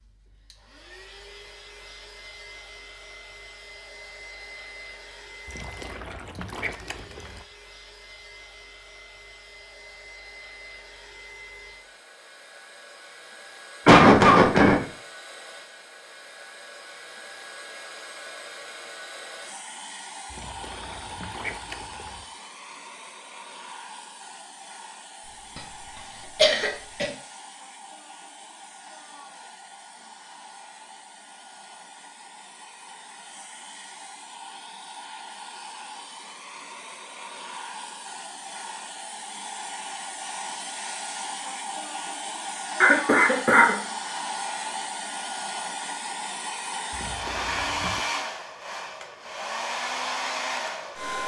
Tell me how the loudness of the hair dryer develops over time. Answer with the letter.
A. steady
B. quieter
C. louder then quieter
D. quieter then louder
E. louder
E.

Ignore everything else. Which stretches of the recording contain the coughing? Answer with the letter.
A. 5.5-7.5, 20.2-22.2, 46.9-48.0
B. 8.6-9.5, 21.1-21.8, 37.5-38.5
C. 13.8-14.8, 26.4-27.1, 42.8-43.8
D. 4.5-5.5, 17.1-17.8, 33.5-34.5
C.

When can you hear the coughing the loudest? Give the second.
14 s.